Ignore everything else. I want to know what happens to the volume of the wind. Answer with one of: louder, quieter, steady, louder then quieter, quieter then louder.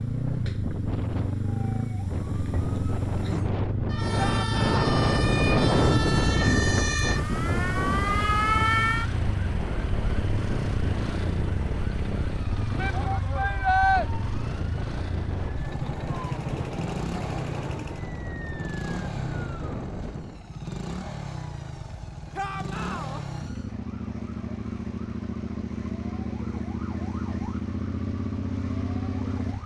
louder then quieter.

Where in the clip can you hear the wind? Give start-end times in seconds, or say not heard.
0.1-20.4.